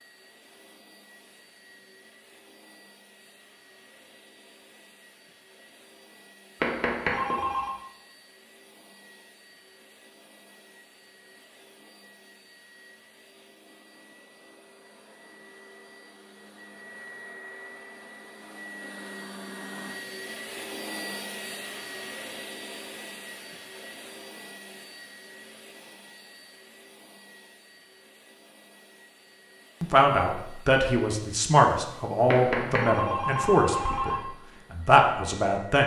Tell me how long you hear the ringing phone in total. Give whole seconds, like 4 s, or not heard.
3 s.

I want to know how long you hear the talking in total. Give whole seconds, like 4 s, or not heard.
6 s.